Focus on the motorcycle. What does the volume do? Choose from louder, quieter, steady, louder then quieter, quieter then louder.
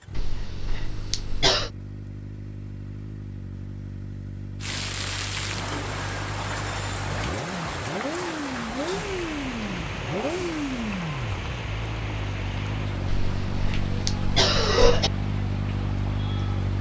louder.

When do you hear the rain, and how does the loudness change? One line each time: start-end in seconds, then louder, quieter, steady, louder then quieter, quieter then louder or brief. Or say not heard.
4.6-16.7 quieter.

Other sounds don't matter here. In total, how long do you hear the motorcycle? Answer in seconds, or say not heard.
17 s.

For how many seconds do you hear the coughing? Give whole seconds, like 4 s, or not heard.
4 s.